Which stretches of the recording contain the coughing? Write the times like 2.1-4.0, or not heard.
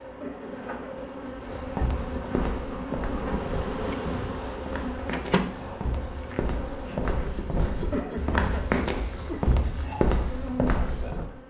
0.2-1.0, 7.9-9.4.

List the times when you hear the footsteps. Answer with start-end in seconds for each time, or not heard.
1.4-11.3.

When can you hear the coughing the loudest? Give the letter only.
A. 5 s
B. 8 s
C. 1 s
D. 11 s
B.